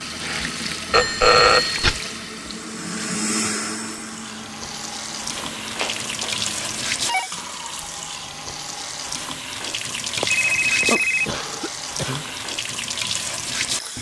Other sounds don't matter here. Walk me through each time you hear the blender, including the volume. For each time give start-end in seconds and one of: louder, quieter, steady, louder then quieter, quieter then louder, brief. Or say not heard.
0.0-6.8 louder then quieter.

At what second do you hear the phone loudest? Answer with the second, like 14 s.
1 s.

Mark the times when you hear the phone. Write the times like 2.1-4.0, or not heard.
0.9-1.9, 5.3-7.3, 10.2-11.2.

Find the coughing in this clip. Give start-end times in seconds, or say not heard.
11.2-12.3.